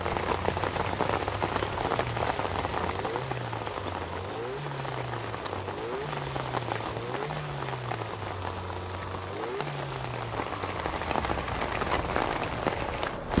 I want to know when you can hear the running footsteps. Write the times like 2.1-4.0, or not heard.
not heard.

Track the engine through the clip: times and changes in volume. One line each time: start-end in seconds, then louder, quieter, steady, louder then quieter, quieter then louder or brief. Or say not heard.
0.0-13.3 steady.